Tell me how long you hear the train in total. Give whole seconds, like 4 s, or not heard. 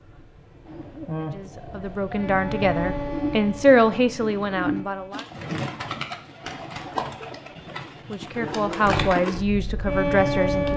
7 s.